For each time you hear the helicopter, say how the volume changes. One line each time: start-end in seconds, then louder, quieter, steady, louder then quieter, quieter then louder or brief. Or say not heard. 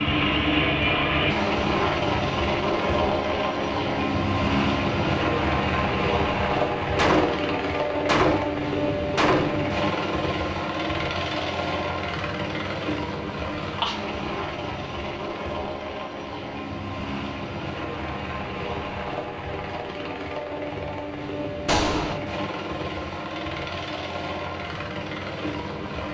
0.0-26.0 quieter.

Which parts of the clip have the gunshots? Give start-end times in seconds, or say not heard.
7.0-9.7, 21.6-22.2.